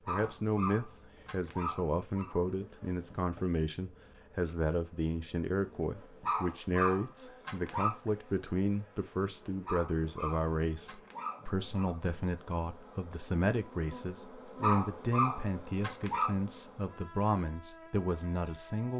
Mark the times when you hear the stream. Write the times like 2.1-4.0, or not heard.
not heard.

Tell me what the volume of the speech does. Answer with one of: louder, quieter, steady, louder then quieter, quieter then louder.
steady.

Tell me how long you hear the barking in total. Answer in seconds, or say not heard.
8 s.